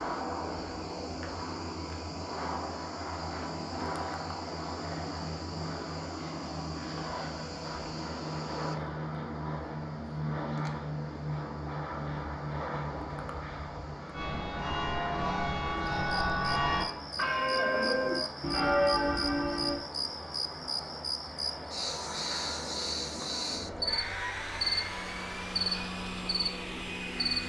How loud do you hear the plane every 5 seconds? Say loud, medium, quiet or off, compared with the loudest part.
loud, loud, loud, medium, loud, loud.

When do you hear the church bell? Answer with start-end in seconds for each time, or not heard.
14.1-19.8.